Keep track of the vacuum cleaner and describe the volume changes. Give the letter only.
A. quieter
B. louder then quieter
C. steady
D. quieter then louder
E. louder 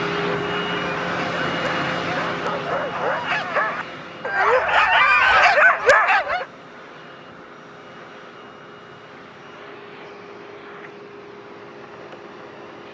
A.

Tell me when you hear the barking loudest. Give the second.
6 s.